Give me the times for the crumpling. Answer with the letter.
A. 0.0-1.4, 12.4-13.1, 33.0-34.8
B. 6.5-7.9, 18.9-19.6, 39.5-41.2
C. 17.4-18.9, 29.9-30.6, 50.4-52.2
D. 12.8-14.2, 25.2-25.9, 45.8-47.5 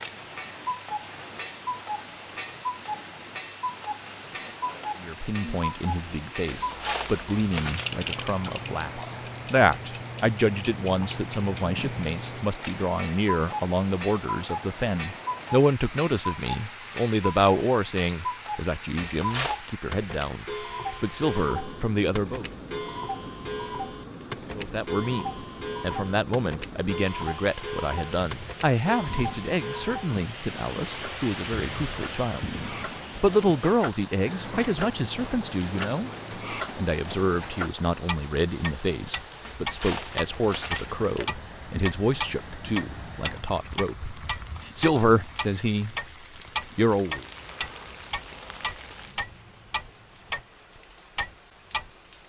B.